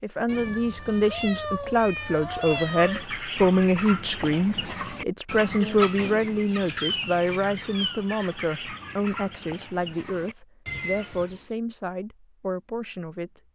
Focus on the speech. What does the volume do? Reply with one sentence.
The volume of the speech goes down.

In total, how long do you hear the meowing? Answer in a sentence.
You can hear the meowing for 4 seconds altogether.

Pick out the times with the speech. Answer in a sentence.
The speech can be heard from 0.0 to 13.5 s.